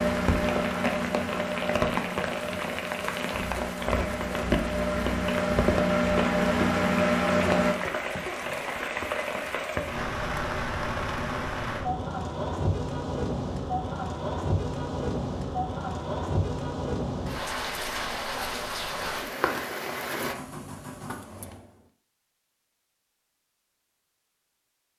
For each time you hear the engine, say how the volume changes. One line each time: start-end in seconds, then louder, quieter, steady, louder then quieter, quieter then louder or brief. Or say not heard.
0.0-7.8 quieter then louder
20.2-21.9 brief.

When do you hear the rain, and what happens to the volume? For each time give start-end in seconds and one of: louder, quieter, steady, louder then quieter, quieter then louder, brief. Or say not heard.
0.0-20.4 steady.